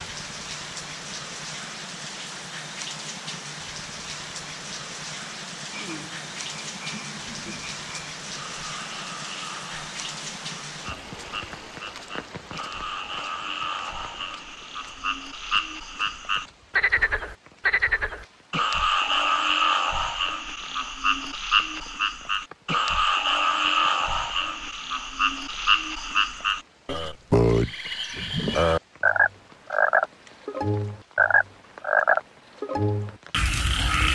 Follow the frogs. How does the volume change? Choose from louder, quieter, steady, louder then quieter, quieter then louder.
louder.